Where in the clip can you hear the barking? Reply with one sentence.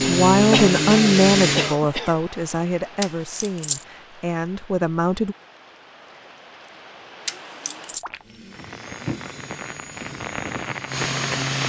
The barking can't be heard in this clip.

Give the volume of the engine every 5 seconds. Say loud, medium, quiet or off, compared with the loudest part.
loud, quiet, medium.